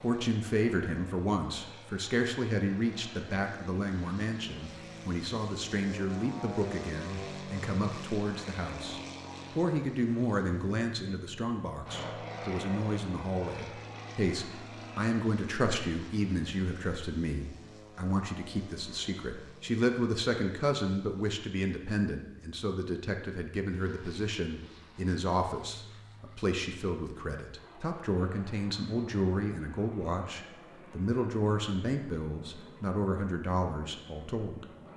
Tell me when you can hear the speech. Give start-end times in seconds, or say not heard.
0.0-34.7.